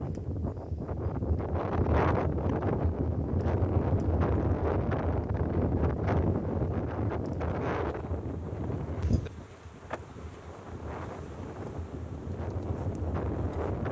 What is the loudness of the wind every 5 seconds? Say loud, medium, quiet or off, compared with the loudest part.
loud, loud, medium.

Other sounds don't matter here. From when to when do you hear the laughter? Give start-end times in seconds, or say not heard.
not heard.